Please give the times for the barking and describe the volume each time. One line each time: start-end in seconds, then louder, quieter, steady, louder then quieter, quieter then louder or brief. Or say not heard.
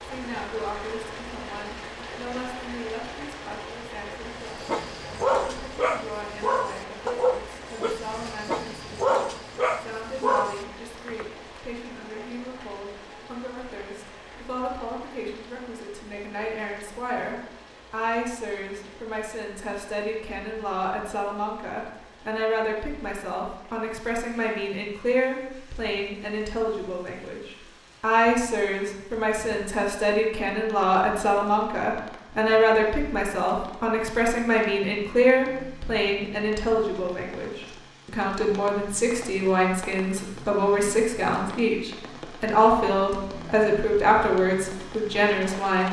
4.5-11.2 steady.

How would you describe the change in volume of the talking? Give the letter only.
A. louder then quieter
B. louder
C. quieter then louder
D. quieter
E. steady
B.